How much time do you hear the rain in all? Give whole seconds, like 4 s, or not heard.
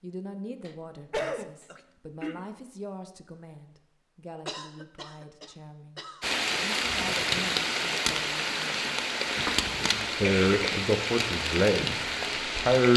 7 s.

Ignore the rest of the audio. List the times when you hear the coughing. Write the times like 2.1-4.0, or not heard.
0.7-2.5, 4.5-6.3, 9.3-10.8.